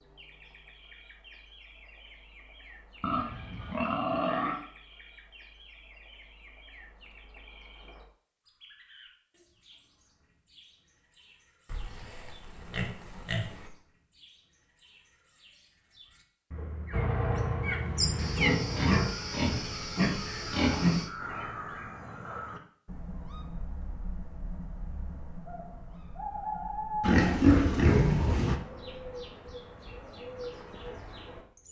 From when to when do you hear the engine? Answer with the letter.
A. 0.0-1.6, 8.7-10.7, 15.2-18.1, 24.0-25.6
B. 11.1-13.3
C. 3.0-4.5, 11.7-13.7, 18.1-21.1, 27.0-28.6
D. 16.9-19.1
D.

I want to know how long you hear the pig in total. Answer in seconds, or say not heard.
8 s.